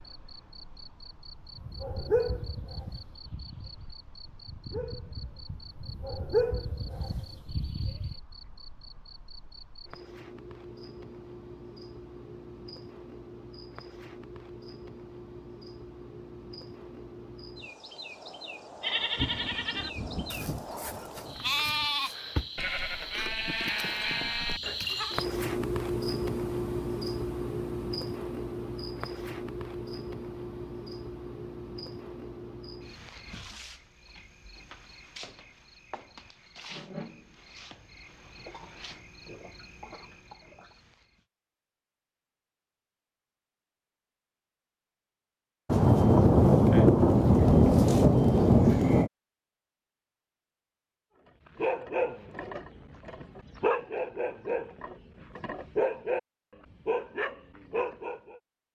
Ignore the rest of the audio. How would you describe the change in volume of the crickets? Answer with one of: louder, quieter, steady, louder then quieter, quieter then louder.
louder then quieter.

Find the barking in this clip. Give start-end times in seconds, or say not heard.
1.6-8.2, 51.5-56.2, 56.9-58.4.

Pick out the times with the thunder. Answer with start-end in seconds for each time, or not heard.
19.0-21.9, 45.6-49.1.